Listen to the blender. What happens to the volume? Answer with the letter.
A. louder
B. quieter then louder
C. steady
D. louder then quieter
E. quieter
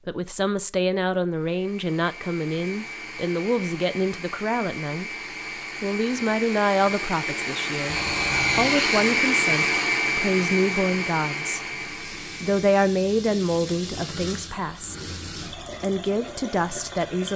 D.